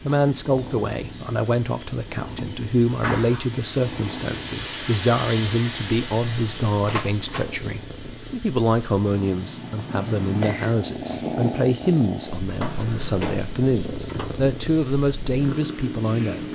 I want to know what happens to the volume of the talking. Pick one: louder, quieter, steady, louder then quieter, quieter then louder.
steady.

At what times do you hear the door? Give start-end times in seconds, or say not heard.
3.0-3.5, 6.8-7.5, 12.4-14.3.